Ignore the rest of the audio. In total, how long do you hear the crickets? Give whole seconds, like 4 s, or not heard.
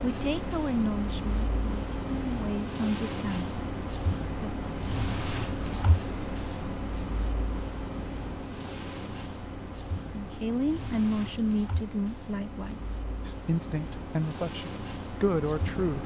16 s.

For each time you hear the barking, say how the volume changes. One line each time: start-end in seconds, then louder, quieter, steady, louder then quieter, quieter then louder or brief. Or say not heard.
not heard.